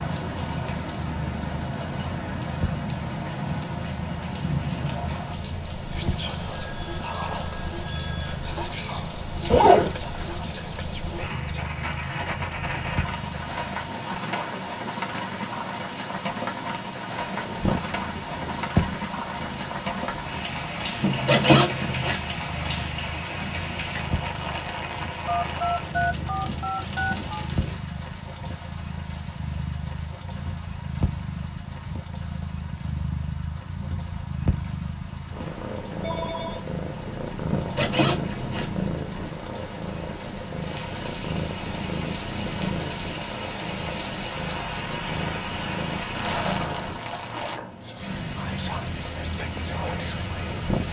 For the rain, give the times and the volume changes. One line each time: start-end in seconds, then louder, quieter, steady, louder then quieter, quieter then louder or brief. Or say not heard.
0.0-50.8 quieter then louder.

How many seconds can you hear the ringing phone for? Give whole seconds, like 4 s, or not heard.
5 s.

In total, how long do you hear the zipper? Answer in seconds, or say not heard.
3 s.